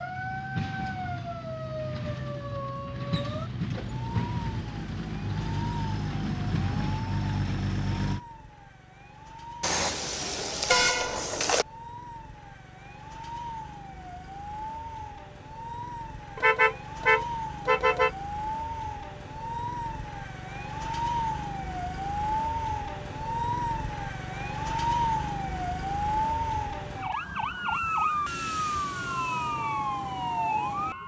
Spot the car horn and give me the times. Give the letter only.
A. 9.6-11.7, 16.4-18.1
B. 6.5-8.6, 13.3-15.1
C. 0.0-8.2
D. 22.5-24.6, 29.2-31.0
A.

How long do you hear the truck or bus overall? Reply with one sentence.
The truck or bus can be heard for 8 seconds in total.